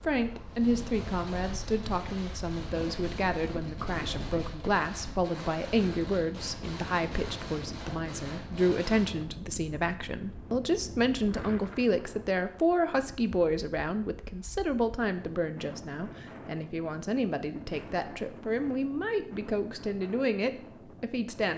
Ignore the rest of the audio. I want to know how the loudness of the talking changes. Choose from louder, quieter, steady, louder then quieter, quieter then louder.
steady.